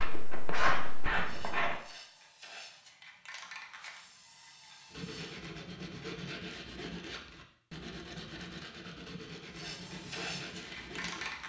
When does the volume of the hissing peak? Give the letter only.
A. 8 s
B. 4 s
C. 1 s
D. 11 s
D.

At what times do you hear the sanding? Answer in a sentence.
The sanding can be heard from 0.0 to 1.8 s and from 4.9 to 11.4 s.